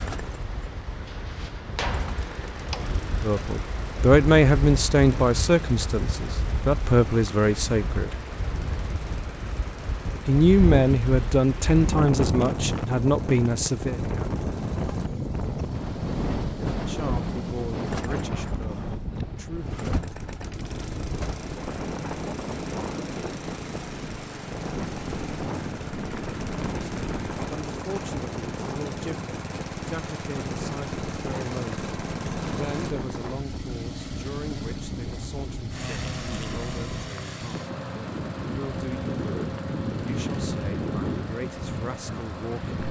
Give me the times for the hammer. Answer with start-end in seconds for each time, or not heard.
1.1-2.9.